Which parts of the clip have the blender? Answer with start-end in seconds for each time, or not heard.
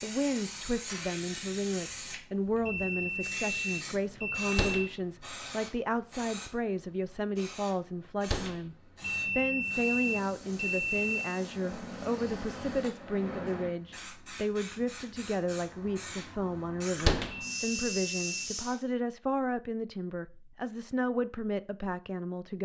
not heard.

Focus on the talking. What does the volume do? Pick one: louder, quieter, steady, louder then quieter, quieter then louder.
steady.